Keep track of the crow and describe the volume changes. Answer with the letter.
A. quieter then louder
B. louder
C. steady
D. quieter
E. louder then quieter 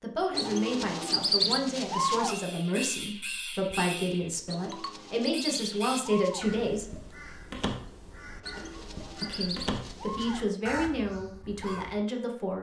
C.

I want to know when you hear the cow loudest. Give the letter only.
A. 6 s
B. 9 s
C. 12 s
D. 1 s
D.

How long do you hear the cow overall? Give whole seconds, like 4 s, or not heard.
6 s.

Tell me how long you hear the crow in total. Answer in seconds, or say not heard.
10 s.